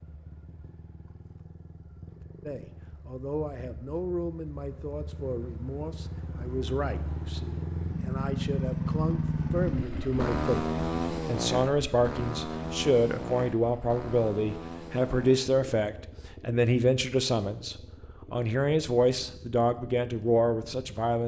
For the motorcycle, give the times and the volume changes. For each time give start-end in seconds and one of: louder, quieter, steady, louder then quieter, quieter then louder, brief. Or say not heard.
0.0-21.1 louder then quieter.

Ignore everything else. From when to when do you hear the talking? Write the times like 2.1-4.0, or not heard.
2.5-10.7, 11.2-21.2.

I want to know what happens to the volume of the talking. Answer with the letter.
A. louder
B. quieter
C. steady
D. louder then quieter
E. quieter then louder
A.